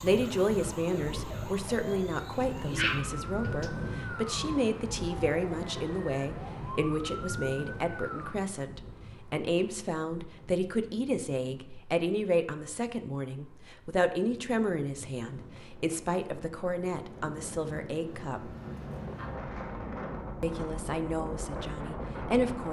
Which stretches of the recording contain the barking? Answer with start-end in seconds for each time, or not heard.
2.3-3.7.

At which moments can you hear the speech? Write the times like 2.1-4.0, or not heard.
0.0-18.6, 20.4-22.6.